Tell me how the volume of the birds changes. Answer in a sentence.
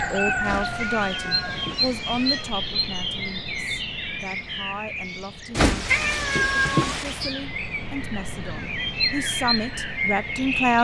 The volume of the birds goes down, then up.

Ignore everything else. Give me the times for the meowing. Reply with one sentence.
The meowing can be heard from 0.4 to 2.5 s and from 5.5 to 7.3 s.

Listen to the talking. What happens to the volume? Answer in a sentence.
The volume of the talking goes down, then up.